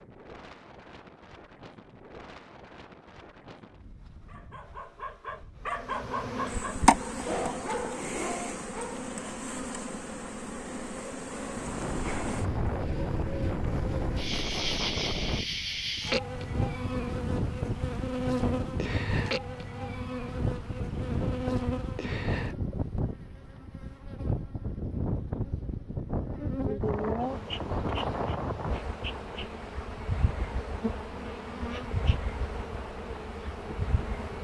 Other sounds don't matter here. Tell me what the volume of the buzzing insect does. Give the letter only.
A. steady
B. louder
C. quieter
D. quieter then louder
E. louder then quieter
C.